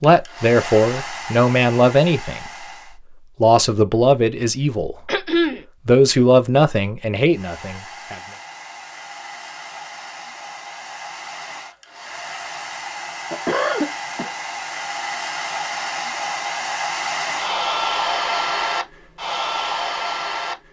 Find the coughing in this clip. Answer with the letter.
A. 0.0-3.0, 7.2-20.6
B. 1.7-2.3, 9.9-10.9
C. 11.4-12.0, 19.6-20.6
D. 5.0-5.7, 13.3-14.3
D.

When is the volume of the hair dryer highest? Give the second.
18 s.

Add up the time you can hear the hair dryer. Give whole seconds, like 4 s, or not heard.
16 s.